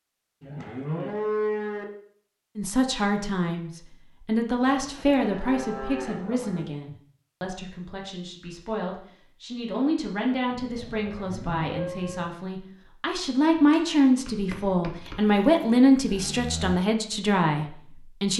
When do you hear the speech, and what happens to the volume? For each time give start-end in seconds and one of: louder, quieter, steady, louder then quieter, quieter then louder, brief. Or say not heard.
2.5-18.3 quieter then louder.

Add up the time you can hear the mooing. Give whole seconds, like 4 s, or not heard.
7 s.